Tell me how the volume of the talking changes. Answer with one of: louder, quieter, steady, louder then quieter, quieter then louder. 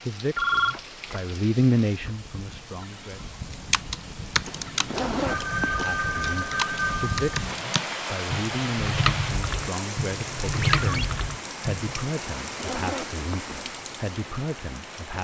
quieter.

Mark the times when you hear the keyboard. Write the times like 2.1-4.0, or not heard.
3.5-12.1.